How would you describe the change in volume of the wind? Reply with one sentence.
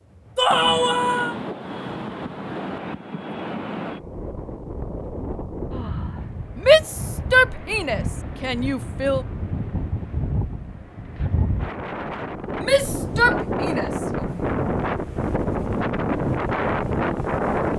The loudness of the wind goes up.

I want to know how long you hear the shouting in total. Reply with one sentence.
The shouting can be heard for 5 seconds in total.